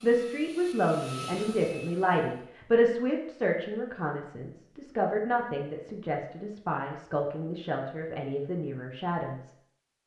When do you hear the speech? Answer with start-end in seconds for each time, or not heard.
0.0-9.5.